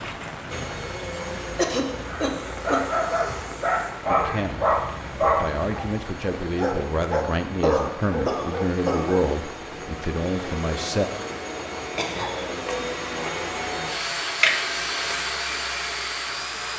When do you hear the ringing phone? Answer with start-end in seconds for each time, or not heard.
14.4-15.2.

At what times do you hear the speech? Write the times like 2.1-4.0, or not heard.
4.0-11.1.